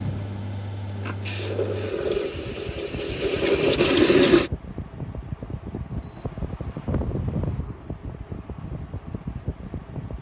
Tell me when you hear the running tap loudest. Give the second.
4 s.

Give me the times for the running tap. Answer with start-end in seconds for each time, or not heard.
0.0-4.5.